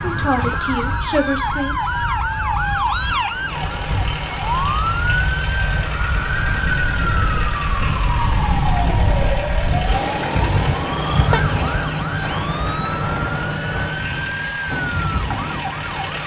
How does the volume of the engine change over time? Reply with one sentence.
The volume of the engine stays about the same.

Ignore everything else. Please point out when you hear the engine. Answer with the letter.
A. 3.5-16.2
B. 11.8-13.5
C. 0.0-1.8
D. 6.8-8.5
A.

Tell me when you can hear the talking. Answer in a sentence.
The talking can be heard from 0.0 to 1.8 s.